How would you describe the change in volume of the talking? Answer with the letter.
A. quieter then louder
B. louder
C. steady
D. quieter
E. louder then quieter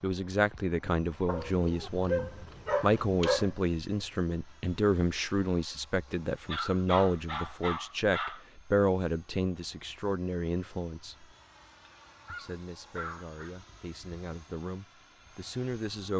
D.